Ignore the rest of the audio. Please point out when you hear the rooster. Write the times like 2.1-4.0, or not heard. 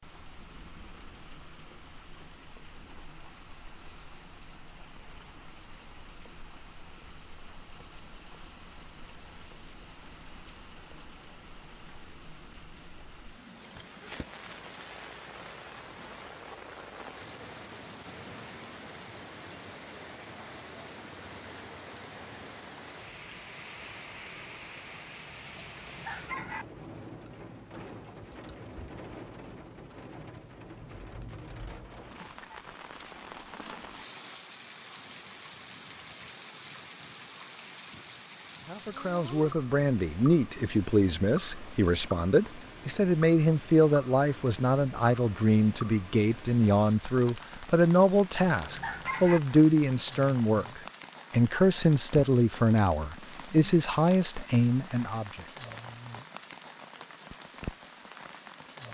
25.6-26.6, 48.5-49.4.